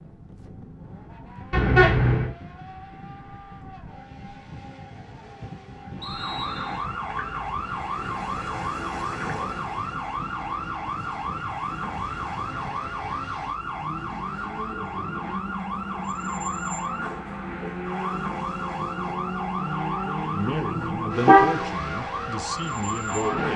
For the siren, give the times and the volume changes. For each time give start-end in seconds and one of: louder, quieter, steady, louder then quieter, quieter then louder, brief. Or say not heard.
6.0-23.5 steady.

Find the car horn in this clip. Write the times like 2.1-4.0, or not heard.
1.5-2.3, 20.7-21.6.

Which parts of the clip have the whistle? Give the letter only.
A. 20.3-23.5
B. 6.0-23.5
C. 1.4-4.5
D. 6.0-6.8
D.